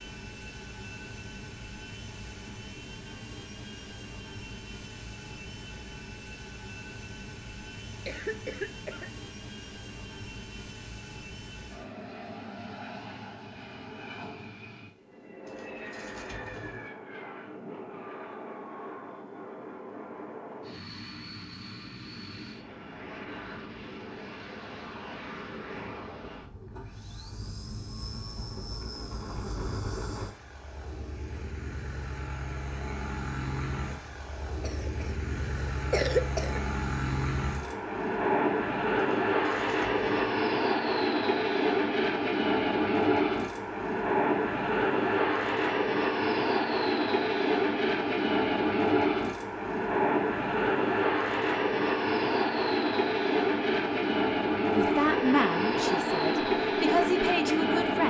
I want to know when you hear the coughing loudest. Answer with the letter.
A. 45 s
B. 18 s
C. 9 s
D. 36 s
D.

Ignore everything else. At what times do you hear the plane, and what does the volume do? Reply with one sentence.
You can hear the plane from 0.0 to 58.0 s, getting louder.